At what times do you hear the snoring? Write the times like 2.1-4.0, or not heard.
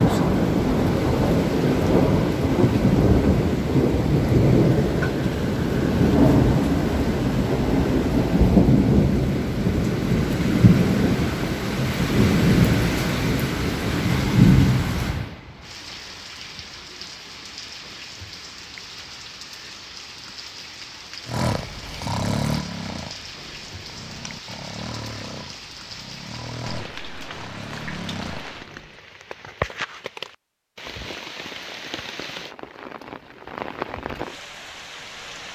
21.2-29.0.